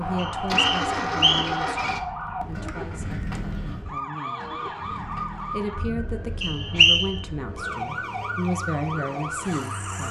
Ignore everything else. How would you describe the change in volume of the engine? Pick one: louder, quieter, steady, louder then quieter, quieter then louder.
quieter.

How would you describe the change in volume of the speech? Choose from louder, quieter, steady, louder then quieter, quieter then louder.
quieter then louder.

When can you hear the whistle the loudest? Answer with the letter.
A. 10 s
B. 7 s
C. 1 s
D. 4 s
B.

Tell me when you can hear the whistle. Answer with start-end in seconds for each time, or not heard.
0.1-1.6, 6.4-7.1.